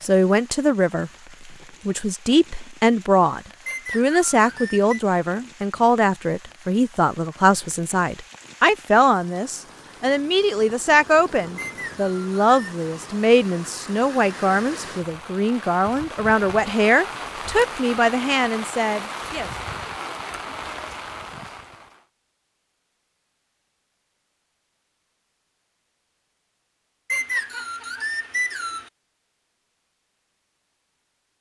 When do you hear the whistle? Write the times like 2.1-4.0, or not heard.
3.6-5.0, 11.6-12.8, 27.1-28.9.